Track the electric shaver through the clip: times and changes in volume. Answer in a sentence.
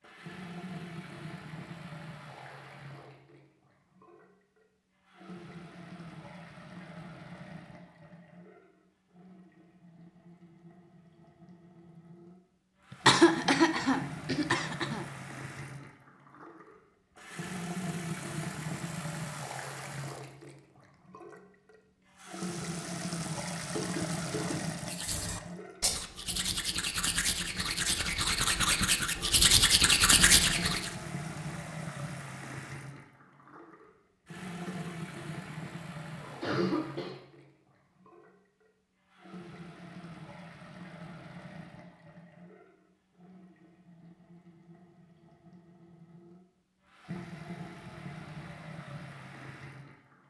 The electric shaver can't be heard in this clip.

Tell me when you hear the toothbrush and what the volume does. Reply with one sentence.
The toothbrush can be heard from 24.8 to 30.9 s, getting louder.